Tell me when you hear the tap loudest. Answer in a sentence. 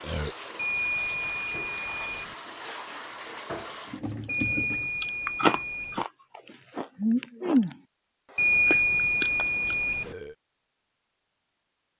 The volume of the tap peaks at 4 seconds.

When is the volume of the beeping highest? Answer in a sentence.
The volume of the beeping peaks at 9 seconds.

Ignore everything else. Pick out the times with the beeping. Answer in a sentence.
You can hear the beeping from 0.6 to 2.4 s, from 4.2 to 6.0 s and from 8.3 to 10.2 s.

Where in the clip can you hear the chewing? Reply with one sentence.
You can hear the chewing from 4.7 to 7.8 s and from 8.7 to 9.8 s.